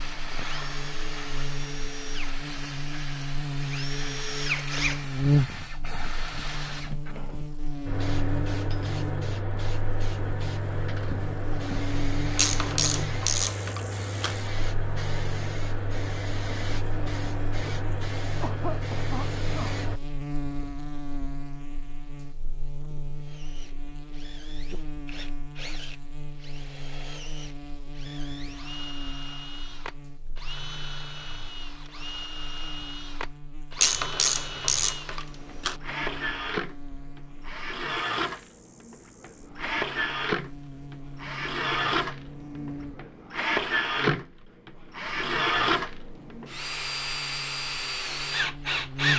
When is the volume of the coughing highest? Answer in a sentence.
The volume of the coughing peaks at 19 seconds.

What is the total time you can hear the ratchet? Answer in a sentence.
The ratchet can be heard for 4 seconds in total.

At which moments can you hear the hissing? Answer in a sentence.
The hissing can be heard from 0.0 to 20.0 s.